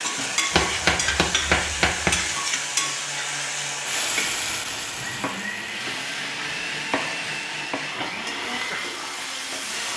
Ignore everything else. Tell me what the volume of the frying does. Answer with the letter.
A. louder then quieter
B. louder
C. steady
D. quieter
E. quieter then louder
D.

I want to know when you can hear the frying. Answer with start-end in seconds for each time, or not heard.
0.0-9.9.